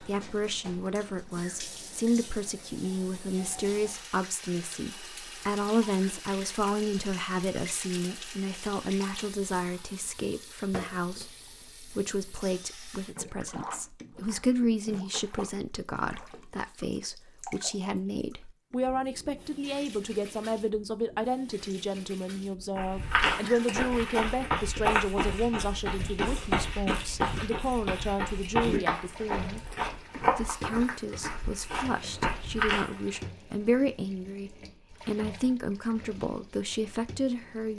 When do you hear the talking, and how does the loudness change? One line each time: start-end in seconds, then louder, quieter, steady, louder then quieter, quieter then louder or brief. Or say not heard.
0.0-37.7 steady.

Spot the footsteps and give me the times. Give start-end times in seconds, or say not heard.
22.8-33.2.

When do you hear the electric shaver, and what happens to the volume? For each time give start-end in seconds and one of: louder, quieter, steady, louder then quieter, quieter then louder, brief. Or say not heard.
not heard.